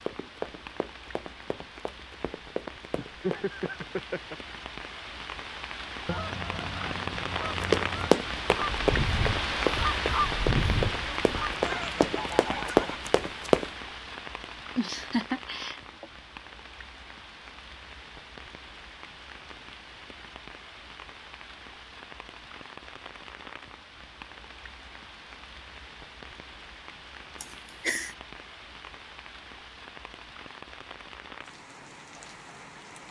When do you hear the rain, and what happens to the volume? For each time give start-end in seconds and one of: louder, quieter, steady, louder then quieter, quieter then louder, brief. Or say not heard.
0.0-33.0 louder then quieter.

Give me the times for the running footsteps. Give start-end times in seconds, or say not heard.
0.0-3.7, 7.4-13.7.